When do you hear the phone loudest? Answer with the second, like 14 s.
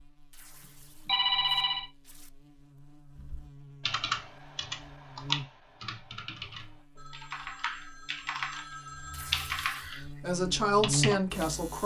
1 s.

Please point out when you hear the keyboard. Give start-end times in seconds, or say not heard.
3.1-11.4.